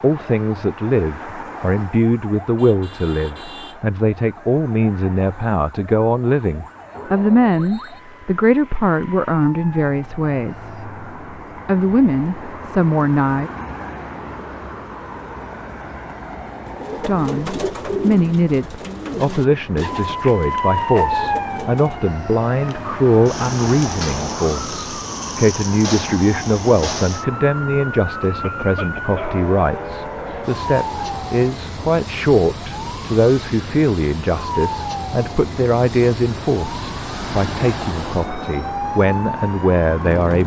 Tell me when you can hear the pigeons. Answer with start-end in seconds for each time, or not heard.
16.6-22.0.